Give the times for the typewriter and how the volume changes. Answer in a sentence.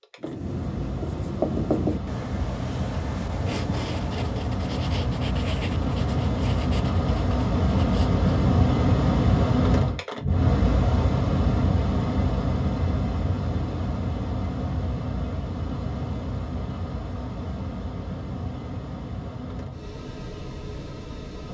You can't hear the typewriter here.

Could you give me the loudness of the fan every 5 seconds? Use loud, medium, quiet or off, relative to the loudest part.
medium, loud, loud, medium, quiet.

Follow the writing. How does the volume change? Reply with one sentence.
The volume of the writing goes down.